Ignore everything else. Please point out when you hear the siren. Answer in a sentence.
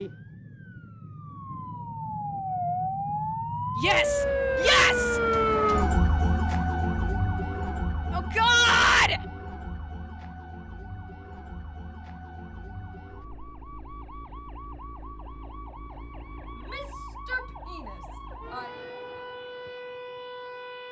You can hear the siren from 0.0 to 20.8 s.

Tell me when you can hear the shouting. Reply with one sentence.
The shouting can be heard from 3.8 to 5.2 s, from 8.1 to 9.2 s and from 16.6 to 18.7 s.